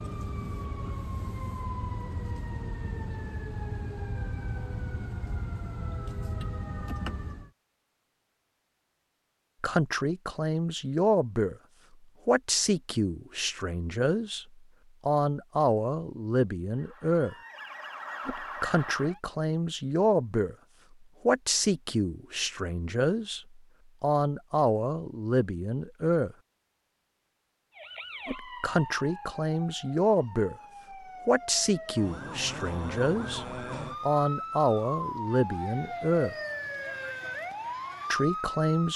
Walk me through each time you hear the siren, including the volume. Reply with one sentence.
You can hear the siren from 0.0 to 7.5 s, at a steady volume; briefly from 16.6 to 19.2 s; and from 27.8 to 38.9 s, getting louder.